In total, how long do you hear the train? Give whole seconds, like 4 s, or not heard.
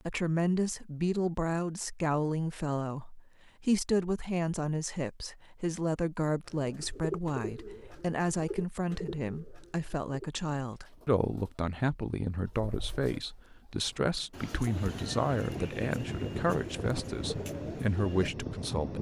5 s.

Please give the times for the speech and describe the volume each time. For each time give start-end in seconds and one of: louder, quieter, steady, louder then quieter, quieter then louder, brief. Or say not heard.
0.1-18.9 steady.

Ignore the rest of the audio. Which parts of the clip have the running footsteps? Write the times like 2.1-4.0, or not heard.
not heard.